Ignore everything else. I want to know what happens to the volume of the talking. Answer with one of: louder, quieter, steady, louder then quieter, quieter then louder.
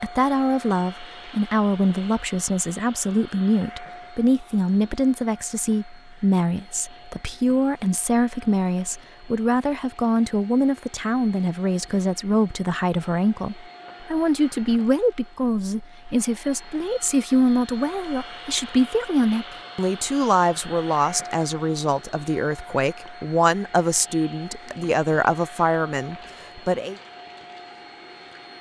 steady.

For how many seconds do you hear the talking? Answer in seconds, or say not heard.
27 s.